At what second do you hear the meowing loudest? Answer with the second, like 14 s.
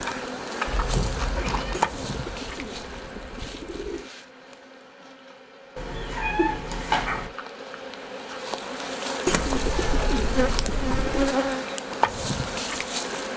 7 s.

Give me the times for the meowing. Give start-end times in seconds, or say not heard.
0.7-1.8, 5.8-7.3, 9.3-11.3.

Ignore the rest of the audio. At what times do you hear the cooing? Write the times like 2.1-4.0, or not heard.
1.7-4.1, 9.2-11.3.